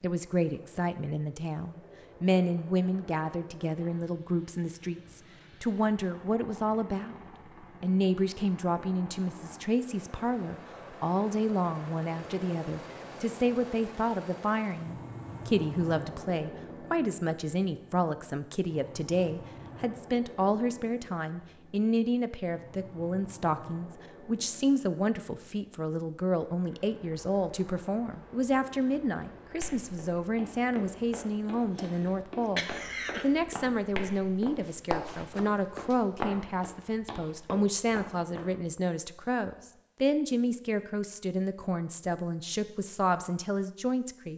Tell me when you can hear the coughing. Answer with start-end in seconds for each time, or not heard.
31.8-33.2.